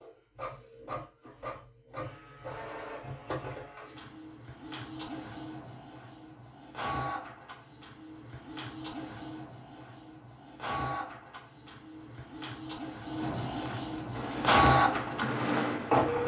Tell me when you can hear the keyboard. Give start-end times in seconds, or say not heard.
14.2-16.2.